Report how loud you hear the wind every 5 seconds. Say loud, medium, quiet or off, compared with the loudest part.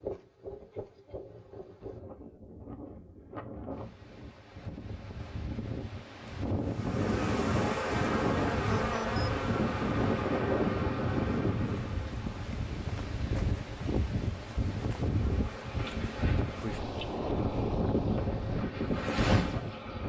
medium, loud, loud, loud.